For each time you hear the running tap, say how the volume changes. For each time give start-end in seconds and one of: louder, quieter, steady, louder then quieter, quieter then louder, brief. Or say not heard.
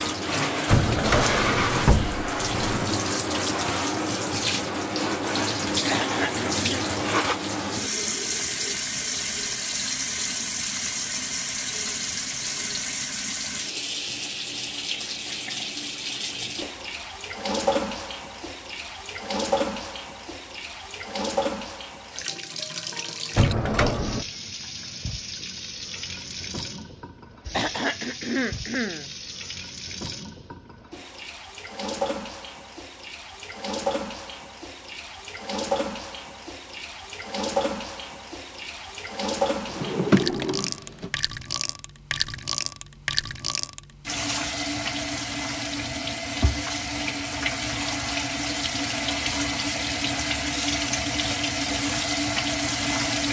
0.0-53.2 quieter then louder.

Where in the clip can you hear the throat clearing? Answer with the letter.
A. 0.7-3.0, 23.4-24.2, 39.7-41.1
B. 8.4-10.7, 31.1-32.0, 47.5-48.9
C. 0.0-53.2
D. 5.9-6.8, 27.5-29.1
D.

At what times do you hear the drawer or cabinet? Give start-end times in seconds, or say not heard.
0.7-3.0, 23.4-24.2, 39.7-41.1.